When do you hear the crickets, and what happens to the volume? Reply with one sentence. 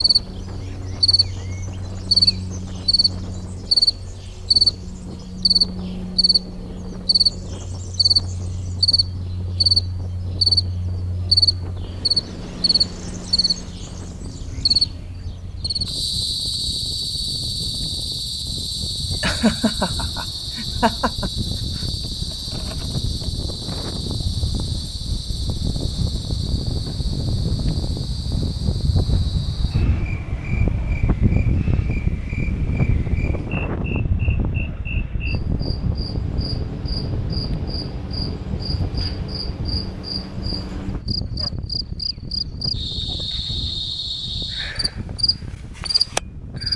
The crickets can be heard from 0.0 to 46.7 s, getting quieter then louder.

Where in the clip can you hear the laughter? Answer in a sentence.
The laughter can be heard from 19.2 to 21.3 s.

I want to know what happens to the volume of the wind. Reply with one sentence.
The volume of the wind goes up, then down.